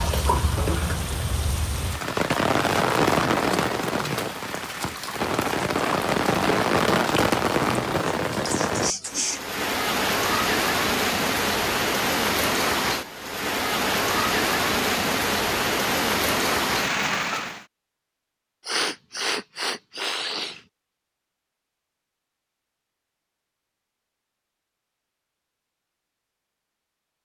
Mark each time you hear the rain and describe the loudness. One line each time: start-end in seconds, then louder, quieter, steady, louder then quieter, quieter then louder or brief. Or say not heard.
0.0-17.6 steady.